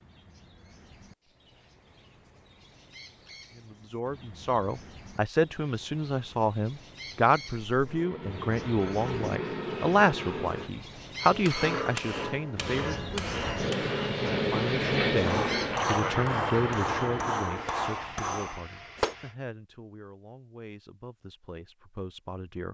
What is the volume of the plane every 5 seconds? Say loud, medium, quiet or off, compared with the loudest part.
off, medium, loud, loud, off.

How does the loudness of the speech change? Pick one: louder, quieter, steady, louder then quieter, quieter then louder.
quieter.